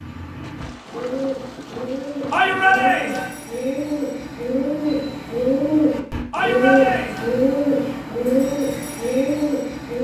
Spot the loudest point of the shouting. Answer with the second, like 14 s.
3 s.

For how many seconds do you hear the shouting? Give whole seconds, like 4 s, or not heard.
2 s.